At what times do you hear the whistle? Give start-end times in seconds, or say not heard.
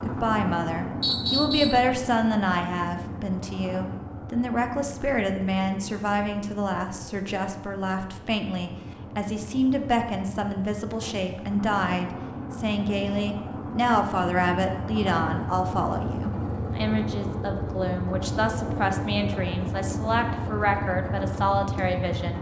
1.0-1.9.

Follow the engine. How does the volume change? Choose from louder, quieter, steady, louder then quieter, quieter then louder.
quieter then louder.